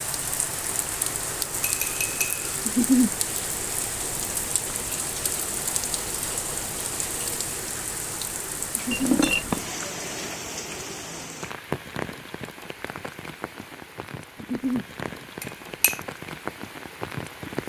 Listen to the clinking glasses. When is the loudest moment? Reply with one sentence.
The volume of the clinking glasses peaks at 9 seconds.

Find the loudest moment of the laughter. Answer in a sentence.
The loudest moment of the laughter is at 3 seconds.